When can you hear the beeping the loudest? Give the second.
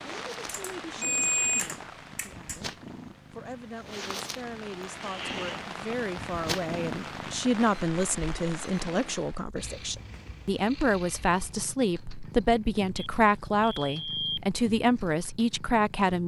1 s.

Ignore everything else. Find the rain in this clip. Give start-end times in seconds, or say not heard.
0.0-9.4.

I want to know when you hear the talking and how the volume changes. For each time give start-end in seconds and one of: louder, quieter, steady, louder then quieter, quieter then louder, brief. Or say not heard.
0.0-16.2 louder.